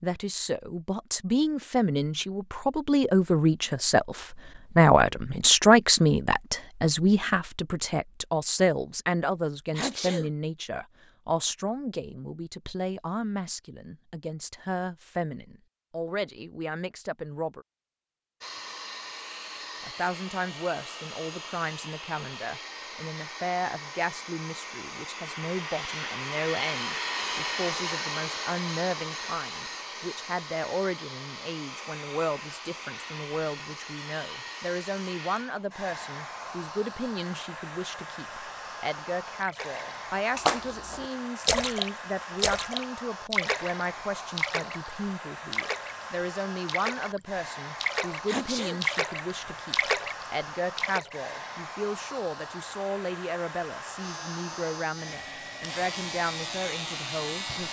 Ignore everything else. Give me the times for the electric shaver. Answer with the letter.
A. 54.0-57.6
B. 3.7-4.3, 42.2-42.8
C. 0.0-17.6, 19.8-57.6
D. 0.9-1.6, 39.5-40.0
A.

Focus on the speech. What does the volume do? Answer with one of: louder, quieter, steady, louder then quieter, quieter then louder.
quieter.